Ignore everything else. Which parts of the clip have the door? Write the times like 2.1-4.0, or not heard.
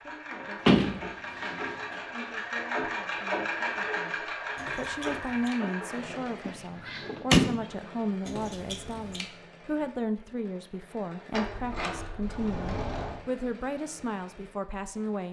0.7-1.6, 6.5-7.7, 11.3-13.2.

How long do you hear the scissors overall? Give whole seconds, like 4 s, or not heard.
2 s.